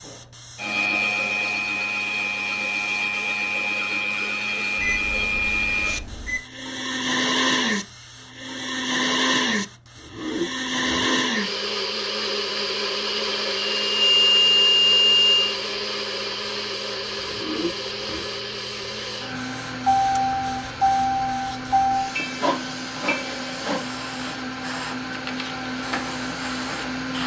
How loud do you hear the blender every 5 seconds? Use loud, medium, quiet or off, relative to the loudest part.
loud, loud, loud, medium, medium, medium.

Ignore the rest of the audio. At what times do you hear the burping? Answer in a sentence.
You can hear the burping from 9.9 to 11.3 s and from 17.2 to 18.2 s.